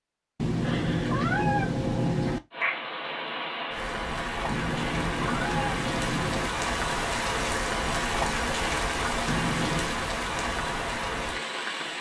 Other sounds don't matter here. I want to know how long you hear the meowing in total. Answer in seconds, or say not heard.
5 s.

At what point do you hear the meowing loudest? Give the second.
1 s.